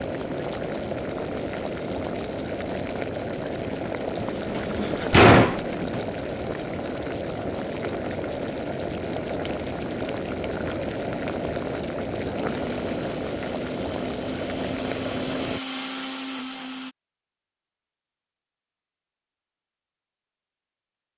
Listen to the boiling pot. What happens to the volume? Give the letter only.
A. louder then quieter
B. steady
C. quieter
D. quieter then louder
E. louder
B.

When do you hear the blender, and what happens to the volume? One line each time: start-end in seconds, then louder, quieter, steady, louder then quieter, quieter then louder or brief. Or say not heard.
12.4-16.9 louder.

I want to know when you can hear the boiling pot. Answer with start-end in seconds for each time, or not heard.
0.0-15.6.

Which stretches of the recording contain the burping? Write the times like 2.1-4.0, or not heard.
not heard.